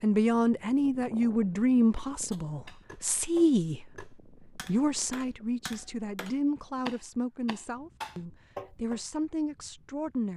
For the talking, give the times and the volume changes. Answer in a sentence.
The talking can be heard from 0.0 to 10.3 s, getting quieter.